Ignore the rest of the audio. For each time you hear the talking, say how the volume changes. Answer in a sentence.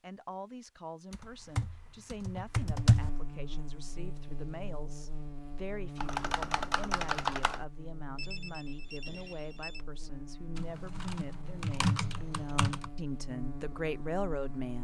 The talking can be heard from 0.0 to 14.8 s, getting louder.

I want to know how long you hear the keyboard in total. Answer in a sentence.
You can hear the keyboard for 6 seconds altogether.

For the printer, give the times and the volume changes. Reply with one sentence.
The printer can't be heard in this clip.